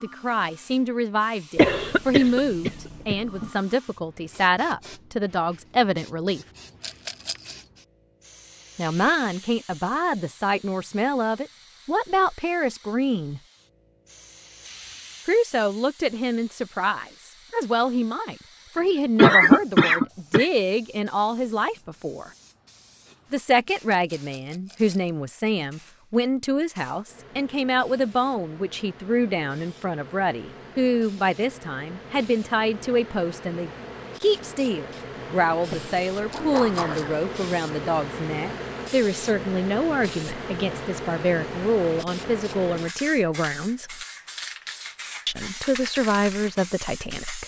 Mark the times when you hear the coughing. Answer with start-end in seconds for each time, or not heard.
1.6-3.5, 19.1-20.4, 35.7-37.2.